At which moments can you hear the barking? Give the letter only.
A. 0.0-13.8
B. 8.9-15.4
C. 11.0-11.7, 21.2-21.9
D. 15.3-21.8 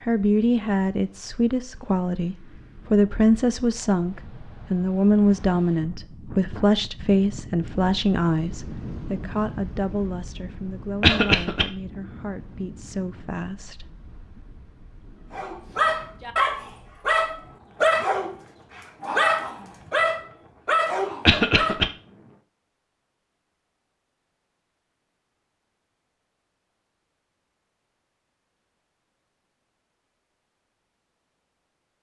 D.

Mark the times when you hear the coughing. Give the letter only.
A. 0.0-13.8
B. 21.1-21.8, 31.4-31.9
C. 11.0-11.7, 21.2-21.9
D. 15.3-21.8
C.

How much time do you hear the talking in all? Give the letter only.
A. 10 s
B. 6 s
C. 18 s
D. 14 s
D.